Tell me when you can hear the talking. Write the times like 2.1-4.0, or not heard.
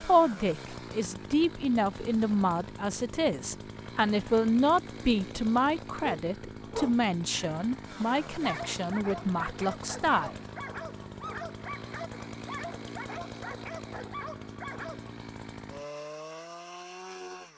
0.0-10.3.